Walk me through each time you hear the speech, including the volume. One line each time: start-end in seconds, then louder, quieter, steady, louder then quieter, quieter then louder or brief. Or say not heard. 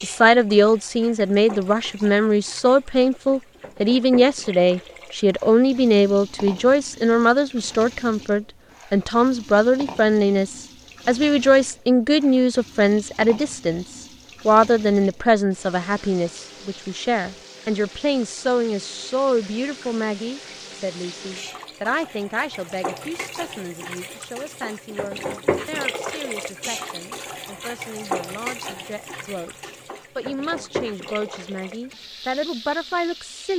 0.0-33.5 quieter.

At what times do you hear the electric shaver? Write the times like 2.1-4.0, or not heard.
not heard.